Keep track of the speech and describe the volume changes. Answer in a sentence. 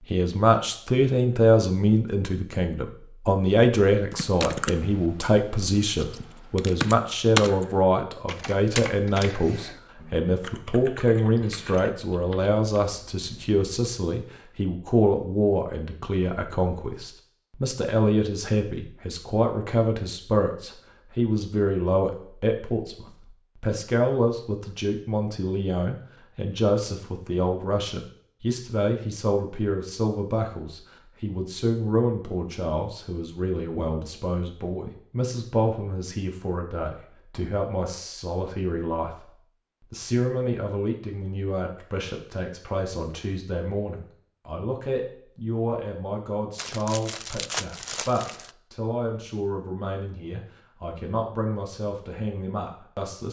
The volume of the speech goes down.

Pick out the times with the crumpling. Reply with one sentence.
You can hear the crumpling from 46.5 to 48.5 s.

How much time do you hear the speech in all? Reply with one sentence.
The speech can be heard for 53 seconds in total.